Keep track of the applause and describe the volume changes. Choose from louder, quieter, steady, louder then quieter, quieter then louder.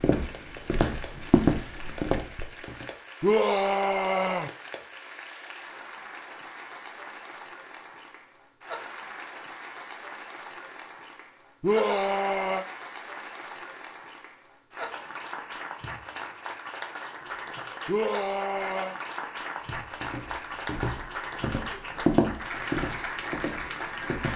louder.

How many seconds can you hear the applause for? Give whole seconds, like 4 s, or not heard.
24 s.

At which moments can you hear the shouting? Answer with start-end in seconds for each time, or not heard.
3.2-4.5, 11.6-12.7, 17.9-18.9.